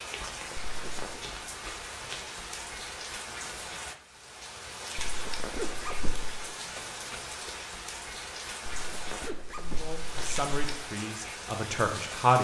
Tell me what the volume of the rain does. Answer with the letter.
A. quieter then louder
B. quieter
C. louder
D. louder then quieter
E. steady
E.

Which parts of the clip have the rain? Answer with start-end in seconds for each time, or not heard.
0.0-12.3.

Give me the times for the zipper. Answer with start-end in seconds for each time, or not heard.
0.6-1.2, 5.0-6.3, 8.7-10.4.